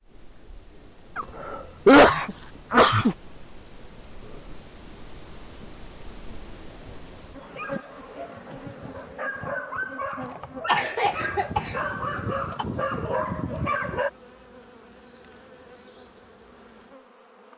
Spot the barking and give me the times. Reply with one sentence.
The barking can be heard from 7.4 to 14.1 s.